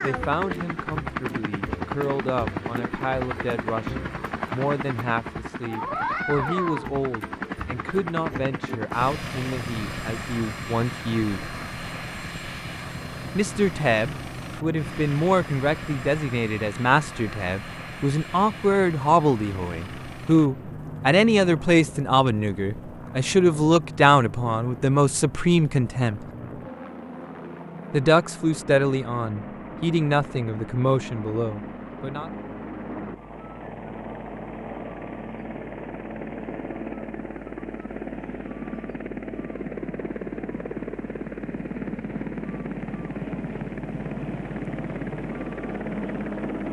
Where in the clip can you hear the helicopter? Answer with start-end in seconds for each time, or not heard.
0.0-46.6.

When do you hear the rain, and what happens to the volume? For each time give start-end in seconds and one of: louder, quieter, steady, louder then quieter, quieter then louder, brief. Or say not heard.
not heard.